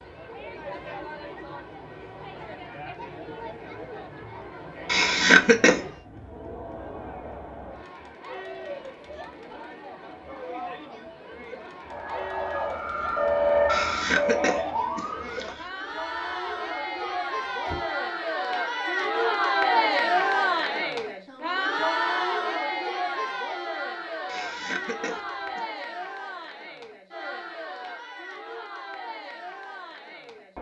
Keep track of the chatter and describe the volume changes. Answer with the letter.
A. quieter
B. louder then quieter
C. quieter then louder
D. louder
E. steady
B.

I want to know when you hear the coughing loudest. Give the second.
5 s.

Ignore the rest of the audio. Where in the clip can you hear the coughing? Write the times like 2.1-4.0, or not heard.
4.8-5.8, 13.7-15.7, 24.2-25.6.